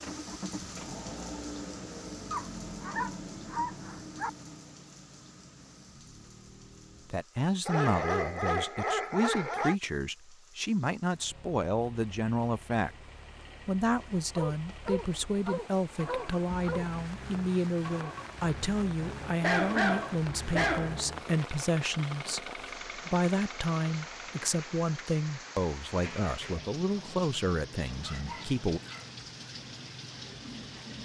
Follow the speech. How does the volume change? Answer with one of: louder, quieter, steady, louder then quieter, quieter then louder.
steady.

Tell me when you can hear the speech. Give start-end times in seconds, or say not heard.
7.1-12.9, 13.7-28.8.